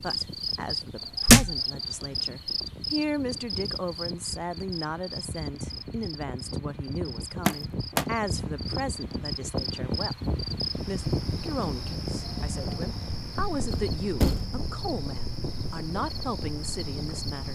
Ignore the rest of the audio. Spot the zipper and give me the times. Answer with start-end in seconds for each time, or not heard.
not heard.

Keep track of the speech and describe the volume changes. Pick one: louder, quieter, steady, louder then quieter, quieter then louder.
steady.